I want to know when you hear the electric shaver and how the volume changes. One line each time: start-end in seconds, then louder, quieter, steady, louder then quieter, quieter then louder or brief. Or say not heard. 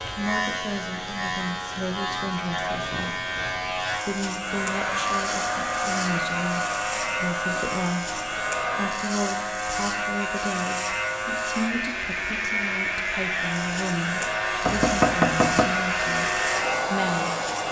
0.0-17.6 steady.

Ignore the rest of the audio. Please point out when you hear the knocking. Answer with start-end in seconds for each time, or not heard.
14.7-15.7.